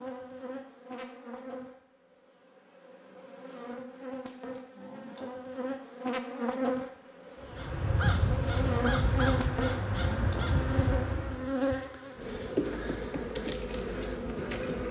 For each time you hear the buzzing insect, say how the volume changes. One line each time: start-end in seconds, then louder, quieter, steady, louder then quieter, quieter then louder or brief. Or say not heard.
0.0-14.8 louder.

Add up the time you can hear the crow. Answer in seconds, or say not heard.
4 s.